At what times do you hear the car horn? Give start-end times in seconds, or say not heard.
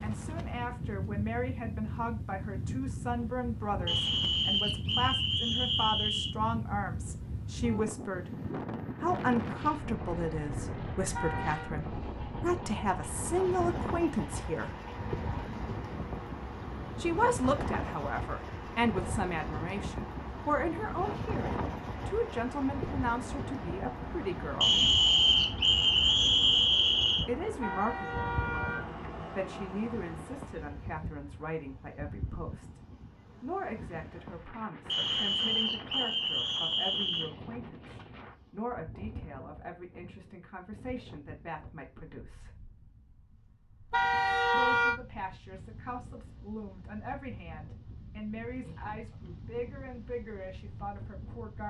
11.2-11.8, 27.6-28.9, 43.9-45.0.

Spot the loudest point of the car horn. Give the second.
45 s.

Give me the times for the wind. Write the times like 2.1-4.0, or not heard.
0.0-51.6.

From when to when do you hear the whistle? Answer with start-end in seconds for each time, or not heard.
3.9-6.3, 24.6-27.2, 34.9-37.3.